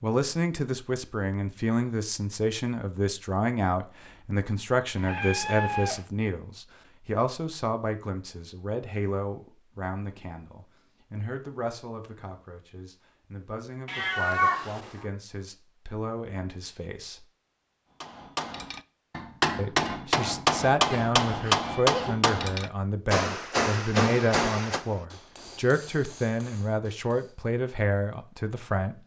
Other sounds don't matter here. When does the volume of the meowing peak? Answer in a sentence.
The volume of the meowing peaks at 14 seconds.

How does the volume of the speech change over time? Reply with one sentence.
The volume of the speech goes down, then up.